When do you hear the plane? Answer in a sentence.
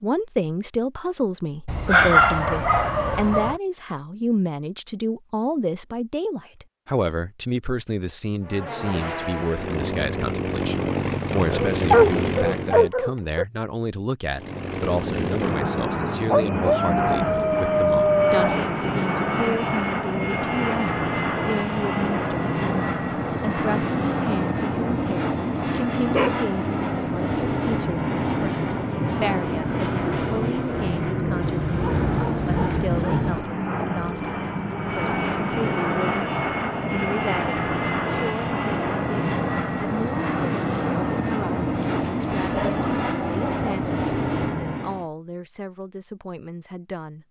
You can hear the plane from 8.4 to 12.9 s and from 14.3 to 45.0 s.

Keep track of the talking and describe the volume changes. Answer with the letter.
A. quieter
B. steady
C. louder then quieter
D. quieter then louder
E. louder
A.